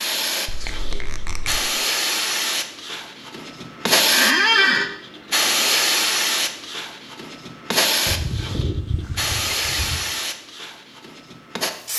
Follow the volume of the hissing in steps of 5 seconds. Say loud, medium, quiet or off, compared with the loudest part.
loud, loud, medium.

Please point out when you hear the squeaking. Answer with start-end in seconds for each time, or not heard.
0.5-1.6, 4.1-4.9, 8.1-10.1.